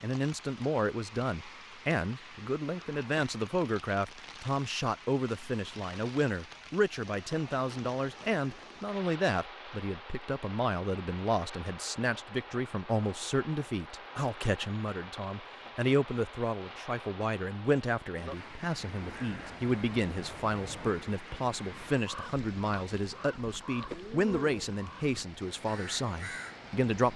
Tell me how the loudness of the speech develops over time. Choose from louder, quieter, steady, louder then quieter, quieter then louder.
steady.